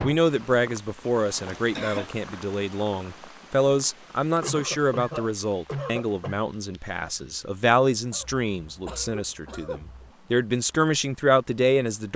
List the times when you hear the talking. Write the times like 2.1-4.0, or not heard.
0.0-12.1.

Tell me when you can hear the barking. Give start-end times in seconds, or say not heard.
not heard.